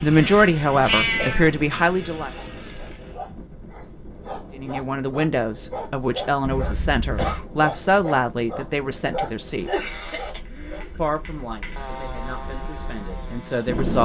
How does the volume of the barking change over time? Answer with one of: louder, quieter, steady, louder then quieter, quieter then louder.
louder.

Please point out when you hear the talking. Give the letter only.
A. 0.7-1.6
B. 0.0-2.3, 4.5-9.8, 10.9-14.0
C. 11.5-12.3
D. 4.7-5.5
B.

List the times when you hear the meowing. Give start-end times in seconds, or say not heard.
0.7-1.6.